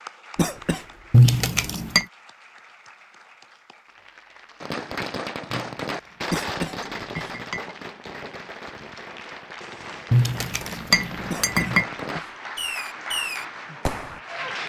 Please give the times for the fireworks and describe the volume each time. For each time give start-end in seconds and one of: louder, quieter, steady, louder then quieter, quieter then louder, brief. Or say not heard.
4.6-14.2 quieter then louder.